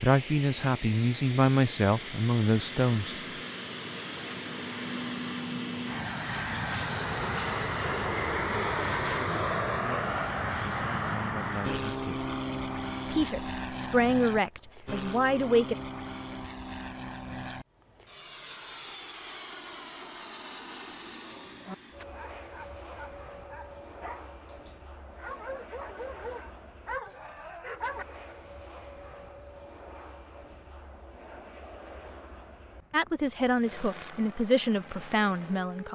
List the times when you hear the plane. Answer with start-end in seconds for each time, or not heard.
0.0-35.9.